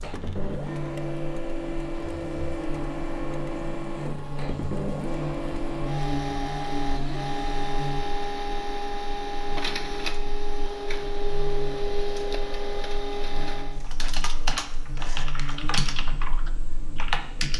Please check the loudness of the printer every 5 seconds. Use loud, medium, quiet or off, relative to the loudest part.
loud, loud, loud, quiet.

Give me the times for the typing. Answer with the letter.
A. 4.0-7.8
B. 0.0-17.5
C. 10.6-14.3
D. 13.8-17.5
D.